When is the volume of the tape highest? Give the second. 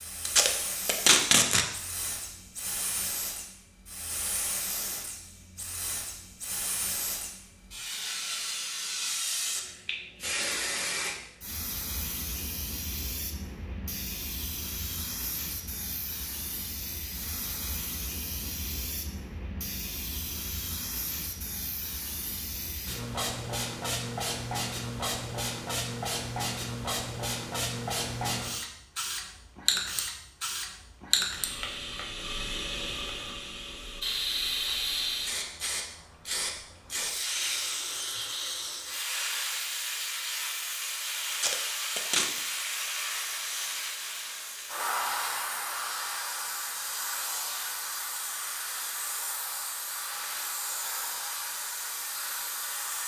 1 s.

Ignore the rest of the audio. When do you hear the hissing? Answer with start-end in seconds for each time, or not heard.
0.0-53.0.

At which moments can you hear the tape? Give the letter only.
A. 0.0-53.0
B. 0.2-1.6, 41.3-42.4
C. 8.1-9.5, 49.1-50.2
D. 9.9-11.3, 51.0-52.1
B.